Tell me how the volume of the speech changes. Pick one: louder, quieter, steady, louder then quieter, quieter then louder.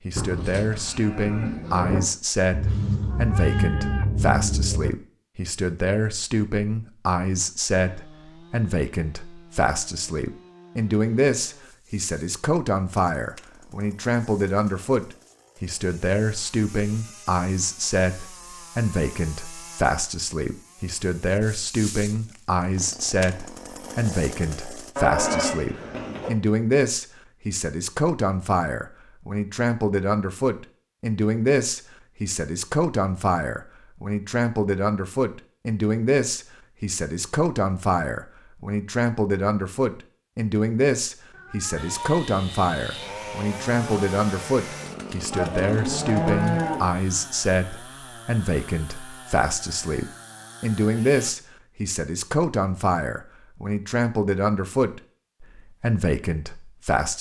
steady.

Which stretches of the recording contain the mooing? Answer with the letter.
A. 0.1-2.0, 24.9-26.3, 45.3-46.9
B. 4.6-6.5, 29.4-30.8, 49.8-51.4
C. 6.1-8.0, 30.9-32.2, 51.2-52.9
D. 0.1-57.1
A.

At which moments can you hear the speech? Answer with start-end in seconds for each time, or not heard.
0.1-57.1.